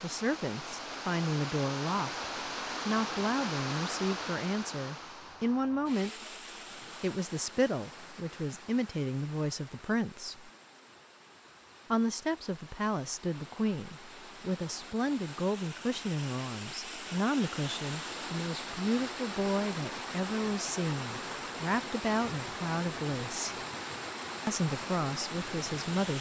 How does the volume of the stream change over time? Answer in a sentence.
The loudness of the stream goes down, then up.